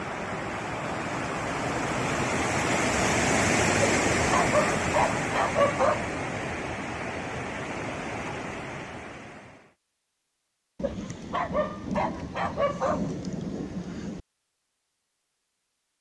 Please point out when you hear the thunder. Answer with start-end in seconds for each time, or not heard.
10.8-14.2.